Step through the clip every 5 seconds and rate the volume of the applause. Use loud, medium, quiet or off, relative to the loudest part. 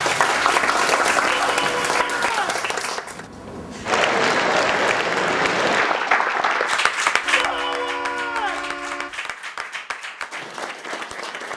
loud, loud, medium.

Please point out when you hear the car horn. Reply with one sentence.
You can hear the car horn from 0.5 to 2.3 s and from 7.2 to 9.2 s.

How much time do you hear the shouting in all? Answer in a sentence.
You can hear the shouting for 3 seconds altogether.